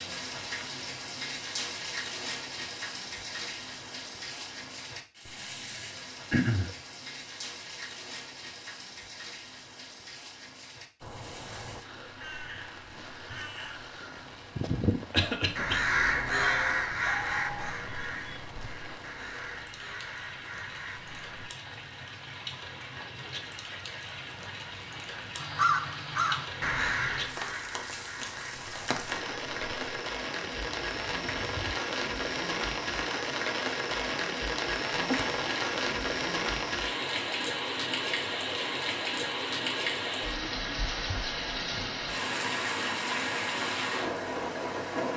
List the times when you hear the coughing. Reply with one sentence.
You can hear the coughing from 6.3 to 6.7 s, from 15.1 to 15.8 s and from 35.0 to 35.4 s.